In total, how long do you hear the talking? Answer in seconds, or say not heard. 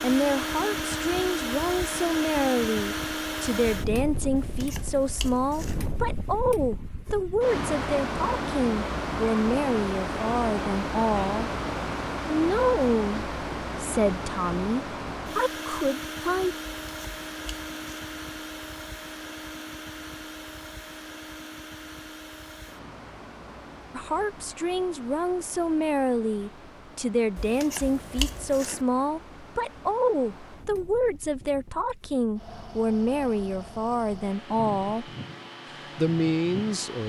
28 s.